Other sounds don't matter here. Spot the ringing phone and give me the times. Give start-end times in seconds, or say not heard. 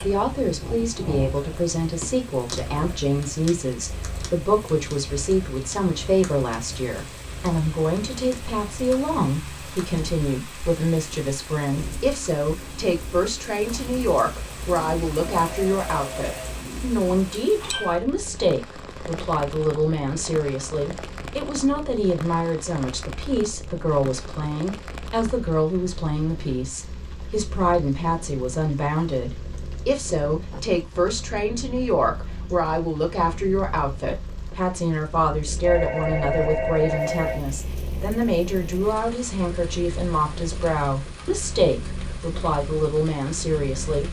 15.3-16.6, 35.6-37.4.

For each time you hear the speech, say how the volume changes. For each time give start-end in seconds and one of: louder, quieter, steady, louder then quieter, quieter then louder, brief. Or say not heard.
0.0-44.0 steady.